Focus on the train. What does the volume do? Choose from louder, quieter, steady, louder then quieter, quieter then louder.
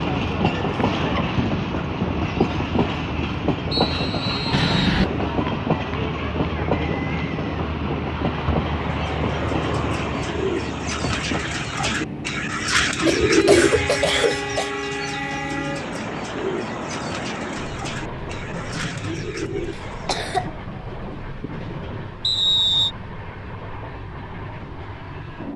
quieter.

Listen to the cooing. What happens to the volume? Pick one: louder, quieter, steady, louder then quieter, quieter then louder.
louder then quieter.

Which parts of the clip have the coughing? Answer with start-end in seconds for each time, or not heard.
4.5-5.0, 13.1-14.7, 20.1-20.5.